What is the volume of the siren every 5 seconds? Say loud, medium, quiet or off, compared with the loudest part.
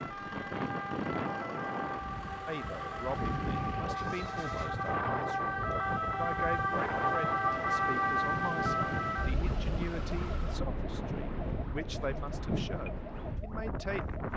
medium, loud, quiet.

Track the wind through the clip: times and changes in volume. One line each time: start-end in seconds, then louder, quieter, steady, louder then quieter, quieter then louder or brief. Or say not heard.
0.0-14.3 steady.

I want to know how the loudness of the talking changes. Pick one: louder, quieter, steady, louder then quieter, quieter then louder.
steady.